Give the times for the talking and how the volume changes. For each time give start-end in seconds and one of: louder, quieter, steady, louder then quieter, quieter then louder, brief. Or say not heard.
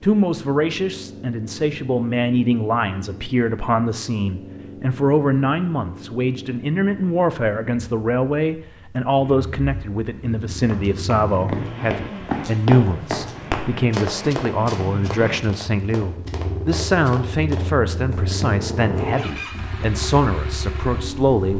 0.0-21.5 steady.